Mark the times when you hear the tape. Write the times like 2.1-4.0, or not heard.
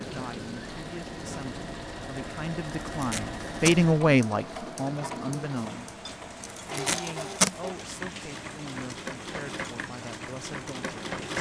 2.8-3.8, 6.5-7.5.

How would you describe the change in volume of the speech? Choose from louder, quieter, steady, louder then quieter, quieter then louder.
louder then quieter.